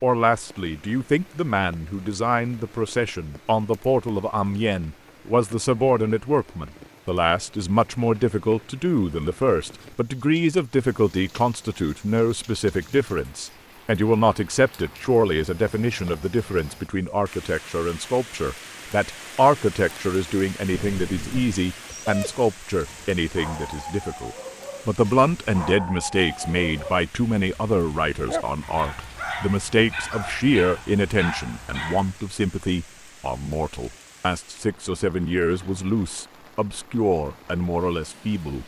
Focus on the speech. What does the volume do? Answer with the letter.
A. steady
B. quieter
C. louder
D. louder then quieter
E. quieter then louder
A.